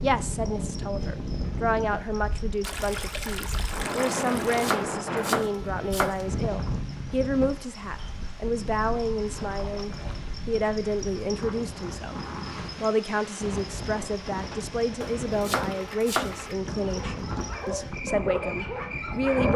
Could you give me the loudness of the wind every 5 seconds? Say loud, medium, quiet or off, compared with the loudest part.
loud, loud, medium, loud.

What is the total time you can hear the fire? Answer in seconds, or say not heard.
not heard.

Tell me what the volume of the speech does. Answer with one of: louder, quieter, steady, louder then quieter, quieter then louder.
steady.